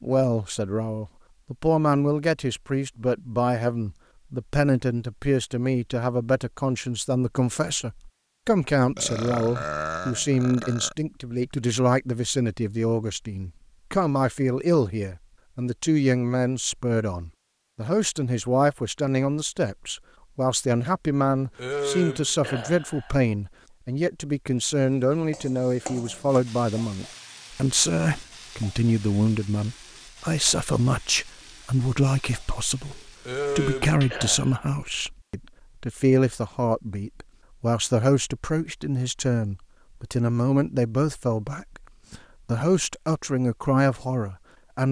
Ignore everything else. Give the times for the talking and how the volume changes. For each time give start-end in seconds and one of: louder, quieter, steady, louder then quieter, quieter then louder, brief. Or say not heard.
0.0-44.8 steady.